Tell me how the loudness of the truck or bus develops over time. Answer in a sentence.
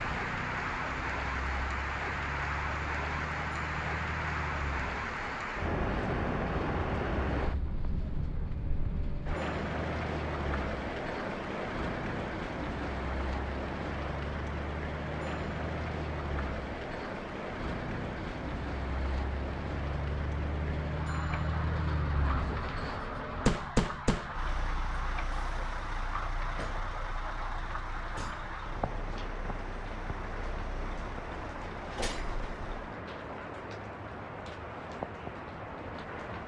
The volume of the truck or bus goes up, then down.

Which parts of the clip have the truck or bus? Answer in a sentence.
You can hear the truck or bus from 0.0 to 33.0 s.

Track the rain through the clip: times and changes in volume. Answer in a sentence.
The rain can be heard from 0.0 to 36.4 s, getting quieter.